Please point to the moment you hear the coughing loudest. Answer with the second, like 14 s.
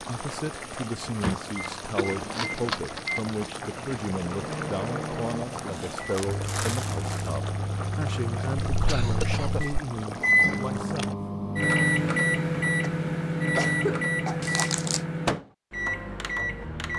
14 s.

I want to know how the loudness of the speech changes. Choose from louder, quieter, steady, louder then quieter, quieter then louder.
steady.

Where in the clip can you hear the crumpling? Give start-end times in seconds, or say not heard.
1.6-3.5, 5.7-7.3, 14.4-15.0.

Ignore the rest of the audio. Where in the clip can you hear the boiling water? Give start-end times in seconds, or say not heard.
0.0-11.2.